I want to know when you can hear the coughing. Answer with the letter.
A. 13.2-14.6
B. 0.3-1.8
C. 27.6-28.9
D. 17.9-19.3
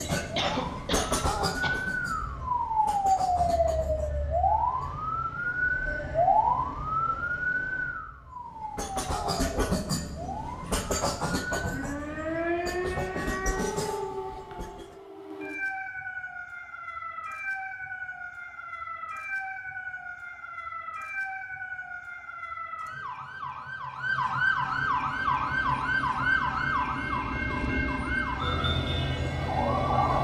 B.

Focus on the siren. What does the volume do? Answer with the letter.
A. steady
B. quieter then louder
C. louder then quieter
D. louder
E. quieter
B.